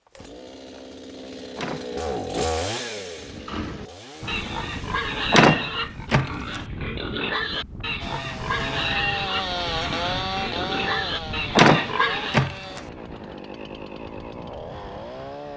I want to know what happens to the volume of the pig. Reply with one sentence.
The volume of the pig stays about the same.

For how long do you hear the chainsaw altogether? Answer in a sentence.
You can hear the chainsaw for 13 seconds altogether.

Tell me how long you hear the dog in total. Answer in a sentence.
You can't hear the dog here.